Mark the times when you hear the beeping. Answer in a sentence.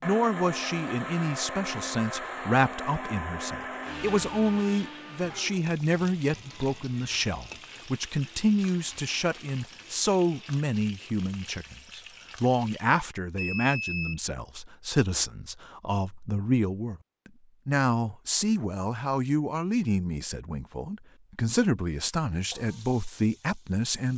You can hear the beeping from 13.3 to 14.2 s.